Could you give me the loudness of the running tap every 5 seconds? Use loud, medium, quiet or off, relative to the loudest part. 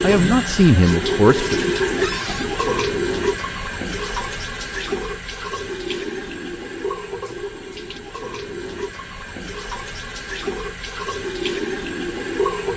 loud, medium, loud.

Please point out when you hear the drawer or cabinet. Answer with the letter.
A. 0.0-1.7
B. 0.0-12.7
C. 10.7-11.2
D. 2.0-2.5
D.